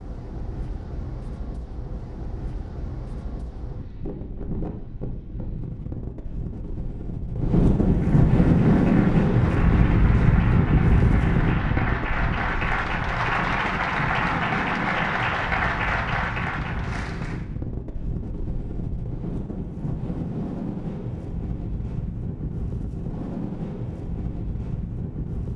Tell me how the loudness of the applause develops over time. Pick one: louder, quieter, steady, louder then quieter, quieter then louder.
louder.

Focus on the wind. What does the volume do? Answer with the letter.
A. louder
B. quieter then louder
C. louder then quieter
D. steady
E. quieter
C.